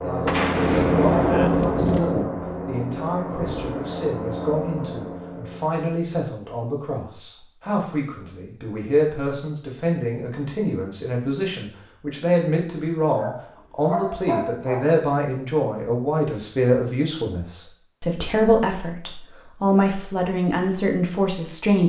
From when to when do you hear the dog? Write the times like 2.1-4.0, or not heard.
13.1-14.9.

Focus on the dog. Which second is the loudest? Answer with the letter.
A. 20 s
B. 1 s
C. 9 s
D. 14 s
D.